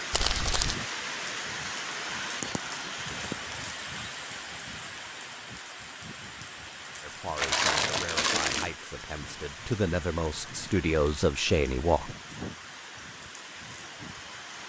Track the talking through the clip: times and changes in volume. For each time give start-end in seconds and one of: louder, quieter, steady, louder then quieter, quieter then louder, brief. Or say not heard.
7.0-12.1 louder.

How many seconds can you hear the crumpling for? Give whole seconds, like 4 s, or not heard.
2 s.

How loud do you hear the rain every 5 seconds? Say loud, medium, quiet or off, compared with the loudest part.
loud, medium, medium.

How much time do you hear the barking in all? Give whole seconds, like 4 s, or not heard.
not heard.